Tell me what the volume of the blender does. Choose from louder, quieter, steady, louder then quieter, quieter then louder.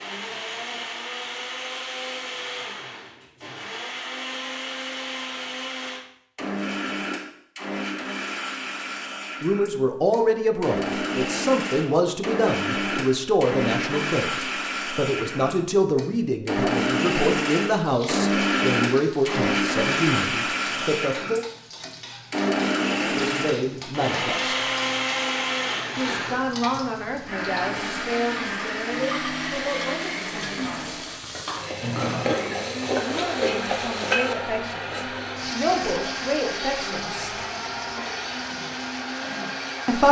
louder then quieter.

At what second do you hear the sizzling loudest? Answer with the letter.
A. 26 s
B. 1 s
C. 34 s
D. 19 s
C.